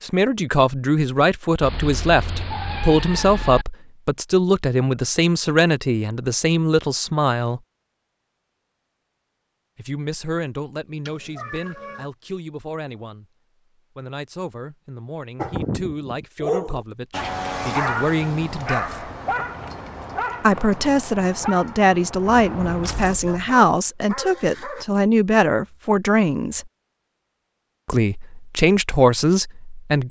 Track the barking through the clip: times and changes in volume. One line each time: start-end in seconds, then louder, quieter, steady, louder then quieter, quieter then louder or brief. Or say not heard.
15.3-24.9 quieter.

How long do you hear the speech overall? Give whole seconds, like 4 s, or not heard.
25 s.